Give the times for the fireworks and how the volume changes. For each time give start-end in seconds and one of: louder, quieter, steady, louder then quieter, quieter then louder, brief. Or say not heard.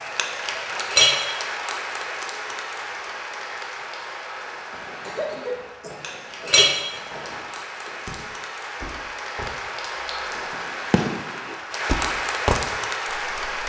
4.5-13.6 louder.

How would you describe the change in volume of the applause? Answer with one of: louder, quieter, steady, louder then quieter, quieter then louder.
quieter then louder.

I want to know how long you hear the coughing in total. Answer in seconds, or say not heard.
2 s.